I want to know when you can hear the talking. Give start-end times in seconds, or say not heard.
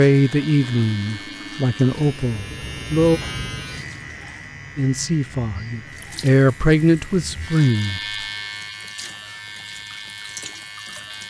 0.0-3.2, 4.8-8.0.